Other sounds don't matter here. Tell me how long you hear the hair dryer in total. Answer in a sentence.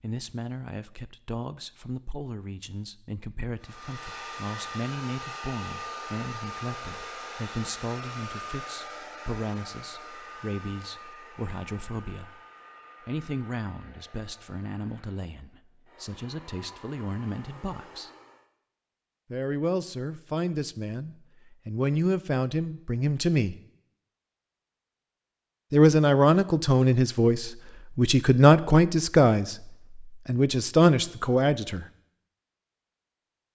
The hair dryer can be heard for 15 seconds in total.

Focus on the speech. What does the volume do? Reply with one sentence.
The loudness of the speech goes up.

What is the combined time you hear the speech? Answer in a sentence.
You can hear the speech for 28 seconds altogether.